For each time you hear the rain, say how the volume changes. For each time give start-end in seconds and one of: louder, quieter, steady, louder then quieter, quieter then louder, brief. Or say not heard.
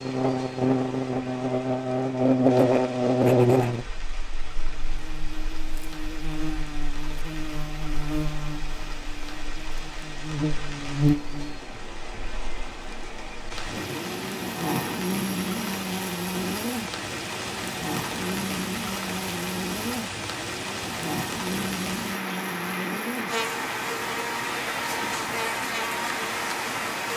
0.0-27.1 louder.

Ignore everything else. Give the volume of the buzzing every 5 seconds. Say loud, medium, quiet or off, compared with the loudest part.
loud, quiet, medium, medium, medium, medium.